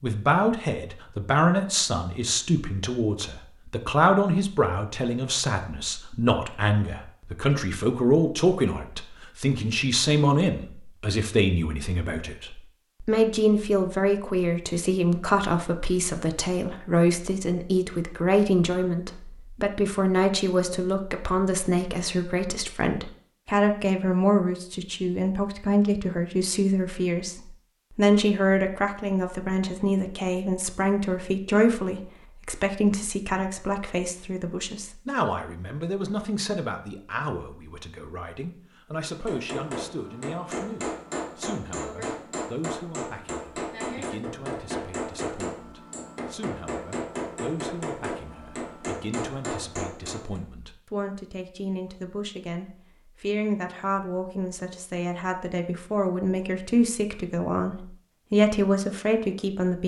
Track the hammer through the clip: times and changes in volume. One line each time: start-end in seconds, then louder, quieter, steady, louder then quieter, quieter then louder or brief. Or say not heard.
39.0-50.4 steady.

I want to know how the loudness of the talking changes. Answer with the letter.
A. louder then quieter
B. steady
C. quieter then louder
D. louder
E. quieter
C.